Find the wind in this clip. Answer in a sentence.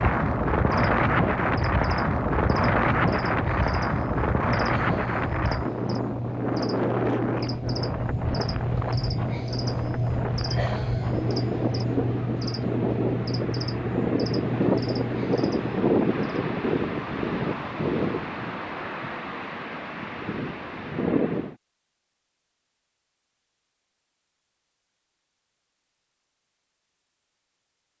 The wind can be heard from 0.0 to 21.6 s.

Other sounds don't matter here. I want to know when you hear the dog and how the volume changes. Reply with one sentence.
The dog can't be heard in this clip.